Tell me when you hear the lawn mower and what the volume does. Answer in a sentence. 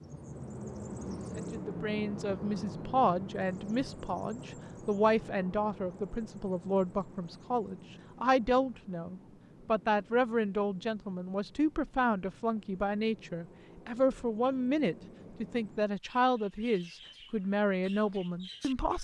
The lawn mower can't be heard in this clip.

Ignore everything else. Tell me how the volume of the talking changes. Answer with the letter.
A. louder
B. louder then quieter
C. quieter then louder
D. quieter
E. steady
E.